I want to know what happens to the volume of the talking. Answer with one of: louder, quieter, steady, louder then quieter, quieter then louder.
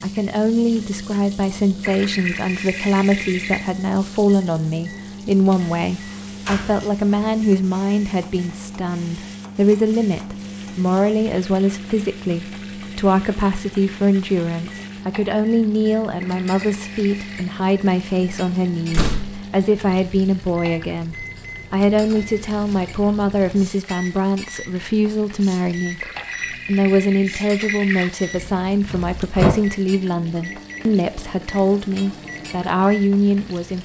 steady.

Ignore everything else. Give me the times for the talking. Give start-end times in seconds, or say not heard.
0.0-33.7.